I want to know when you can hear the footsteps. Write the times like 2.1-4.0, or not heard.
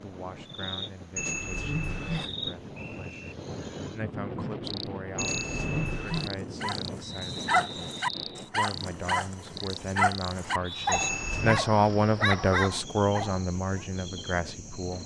not heard.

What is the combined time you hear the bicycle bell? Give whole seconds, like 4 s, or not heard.
3 s.